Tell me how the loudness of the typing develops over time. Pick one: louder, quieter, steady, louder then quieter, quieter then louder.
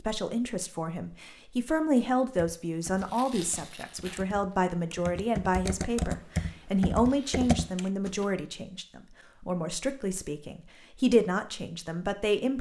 louder.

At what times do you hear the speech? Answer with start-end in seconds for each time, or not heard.
0.0-12.5.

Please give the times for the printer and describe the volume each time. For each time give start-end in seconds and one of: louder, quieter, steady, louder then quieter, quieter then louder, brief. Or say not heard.
not heard.